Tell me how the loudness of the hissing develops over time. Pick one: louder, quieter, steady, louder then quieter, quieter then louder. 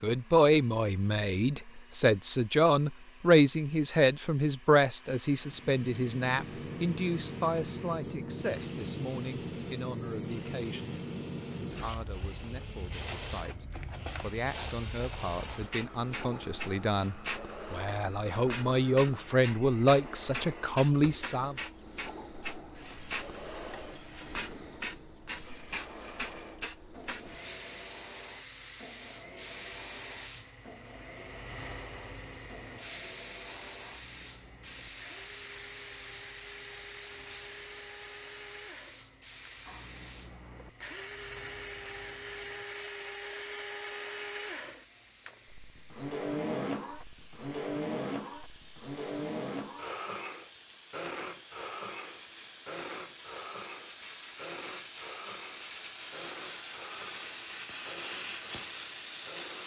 quieter then louder.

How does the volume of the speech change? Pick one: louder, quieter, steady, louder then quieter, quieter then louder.
quieter then louder.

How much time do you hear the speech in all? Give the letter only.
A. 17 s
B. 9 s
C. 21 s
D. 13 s
C.